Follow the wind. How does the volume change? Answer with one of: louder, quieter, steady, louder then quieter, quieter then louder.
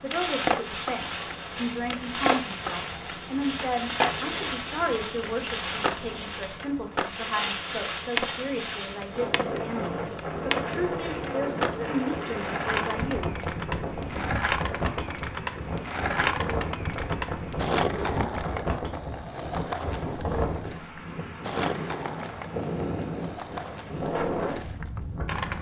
steady.